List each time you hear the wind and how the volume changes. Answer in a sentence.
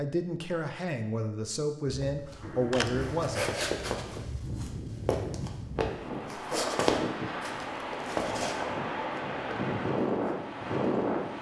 The wind can be heard from 2.1 to 11.3 s, getting louder.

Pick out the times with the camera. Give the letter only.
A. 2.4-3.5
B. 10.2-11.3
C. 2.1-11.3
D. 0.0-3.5
A.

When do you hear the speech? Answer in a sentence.
The speech can be heard from 0.0 to 3.5 s.